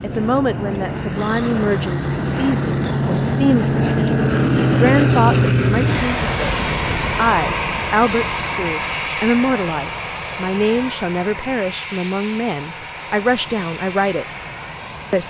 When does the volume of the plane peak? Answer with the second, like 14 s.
5 s.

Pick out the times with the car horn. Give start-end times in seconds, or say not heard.
not heard.